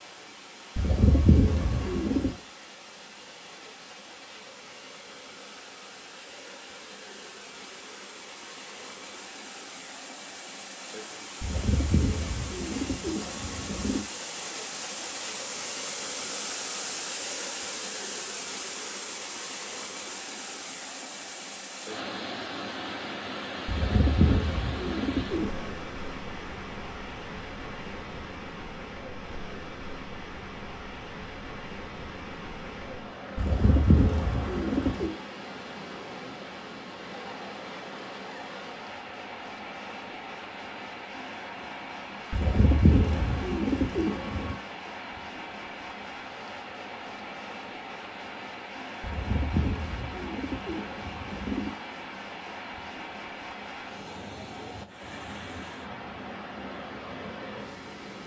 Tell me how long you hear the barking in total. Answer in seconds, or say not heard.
not heard.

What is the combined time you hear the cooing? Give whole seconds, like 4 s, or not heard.
13 s.